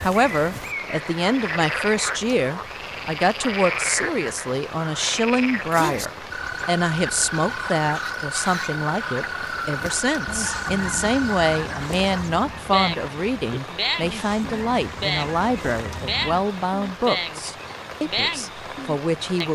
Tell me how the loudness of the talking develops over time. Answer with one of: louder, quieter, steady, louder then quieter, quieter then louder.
steady.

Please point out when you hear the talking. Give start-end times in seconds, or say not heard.
0.0-19.4.